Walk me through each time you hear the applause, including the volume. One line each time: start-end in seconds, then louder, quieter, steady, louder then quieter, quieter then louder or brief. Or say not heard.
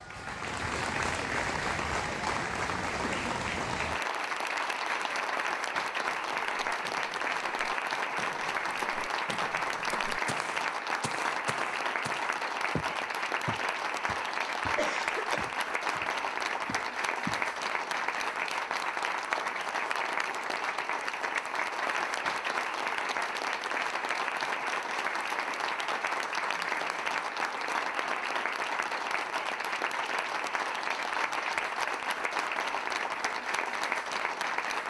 0.0-34.8 steady.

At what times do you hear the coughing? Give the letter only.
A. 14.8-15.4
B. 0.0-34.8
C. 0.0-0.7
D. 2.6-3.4
A.